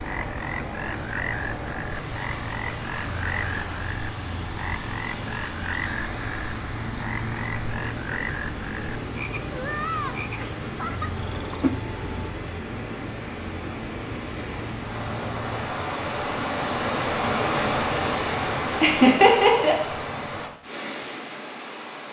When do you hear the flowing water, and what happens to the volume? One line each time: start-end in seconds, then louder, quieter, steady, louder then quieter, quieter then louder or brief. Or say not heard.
0.0-22.0 louder.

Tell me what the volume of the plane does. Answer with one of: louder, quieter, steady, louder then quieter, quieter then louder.
steady.